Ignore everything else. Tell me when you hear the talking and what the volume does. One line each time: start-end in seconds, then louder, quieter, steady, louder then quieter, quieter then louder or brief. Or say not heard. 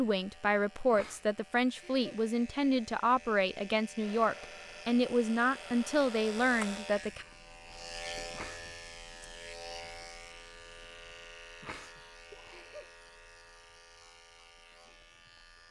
0.0-7.2 steady.